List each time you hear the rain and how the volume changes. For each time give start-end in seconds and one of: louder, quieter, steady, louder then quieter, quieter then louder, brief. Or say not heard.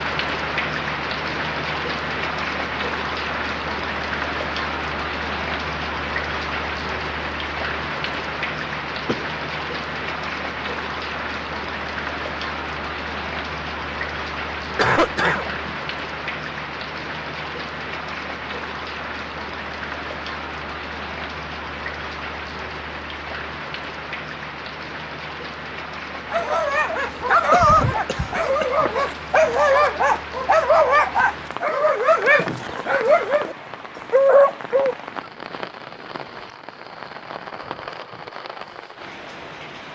0.0-39.9 quieter.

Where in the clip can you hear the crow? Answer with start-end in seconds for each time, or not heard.
not heard.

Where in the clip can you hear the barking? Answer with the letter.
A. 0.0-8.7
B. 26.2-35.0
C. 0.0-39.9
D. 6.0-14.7
B.